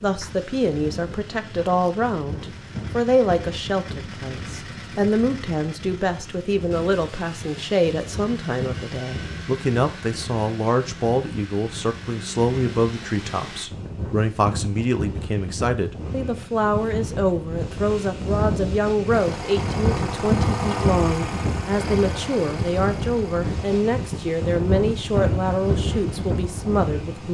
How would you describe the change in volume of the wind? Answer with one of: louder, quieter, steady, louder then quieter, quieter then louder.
louder.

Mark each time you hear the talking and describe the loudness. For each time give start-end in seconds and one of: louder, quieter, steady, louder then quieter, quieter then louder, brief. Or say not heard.
0.0-27.2 steady.